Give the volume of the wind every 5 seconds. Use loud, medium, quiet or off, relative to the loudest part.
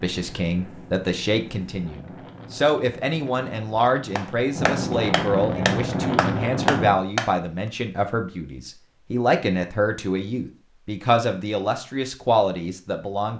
medium, loud, off.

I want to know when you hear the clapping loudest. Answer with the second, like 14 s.
7 s.